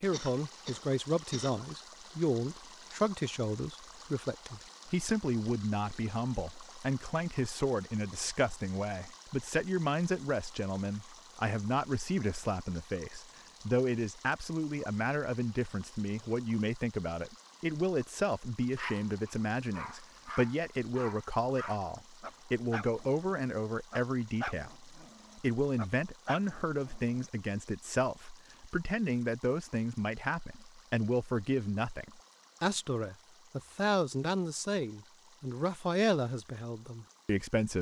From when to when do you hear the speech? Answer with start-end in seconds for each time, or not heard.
0.0-37.7.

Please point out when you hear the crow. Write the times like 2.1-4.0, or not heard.
not heard.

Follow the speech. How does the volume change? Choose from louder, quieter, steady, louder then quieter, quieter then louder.
steady.